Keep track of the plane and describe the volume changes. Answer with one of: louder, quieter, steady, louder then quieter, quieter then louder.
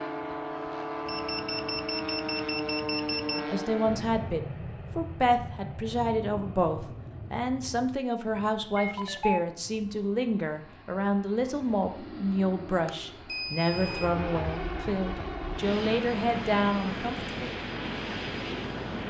quieter then louder.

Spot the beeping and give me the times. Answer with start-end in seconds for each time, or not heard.
1.1-3.5, 8.8-9.4, 12.8-14.1.